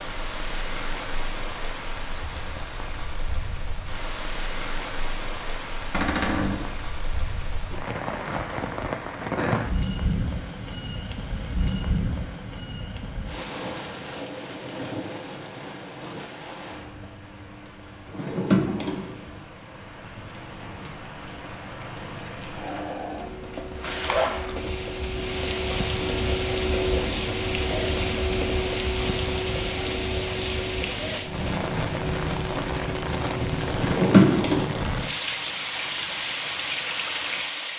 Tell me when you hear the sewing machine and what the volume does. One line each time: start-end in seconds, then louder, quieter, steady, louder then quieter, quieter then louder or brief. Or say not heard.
22.6-33.8 louder then quieter.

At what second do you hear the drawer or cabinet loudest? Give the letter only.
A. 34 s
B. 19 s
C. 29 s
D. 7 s
A.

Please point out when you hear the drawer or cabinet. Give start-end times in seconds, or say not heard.
5.9-6.7, 18.1-19.1, 33.7-34.6.